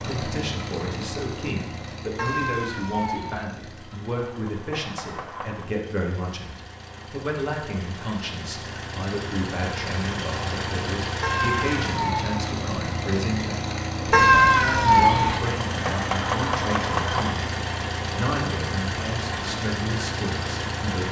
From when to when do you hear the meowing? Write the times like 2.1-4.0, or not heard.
2.1-3.5, 11.2-12.3, 14.1-15.4.